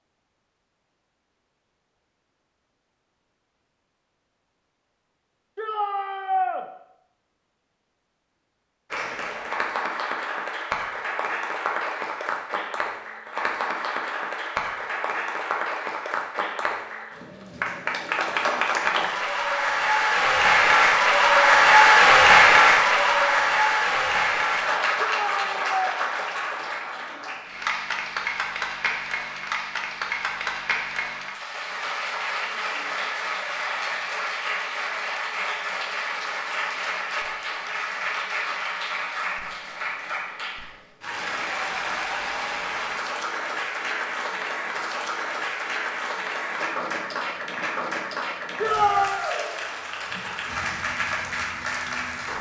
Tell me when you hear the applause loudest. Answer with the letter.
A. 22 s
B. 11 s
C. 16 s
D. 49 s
A.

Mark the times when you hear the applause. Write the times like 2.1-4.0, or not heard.
8.9-52.3.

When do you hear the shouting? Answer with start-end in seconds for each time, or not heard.
5.5-6.7, 25.1-26.0, 48.6-49.2.